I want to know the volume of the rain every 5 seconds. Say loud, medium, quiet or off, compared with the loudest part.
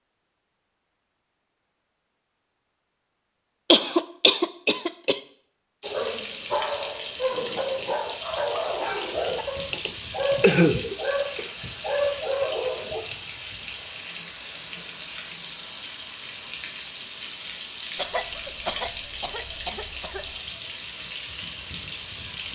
off, loud, loud, loud, loud.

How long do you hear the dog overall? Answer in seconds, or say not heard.
7 s.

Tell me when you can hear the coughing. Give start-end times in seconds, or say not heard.
3.7-5.2, 9.7-11.4, 17.9-20.4.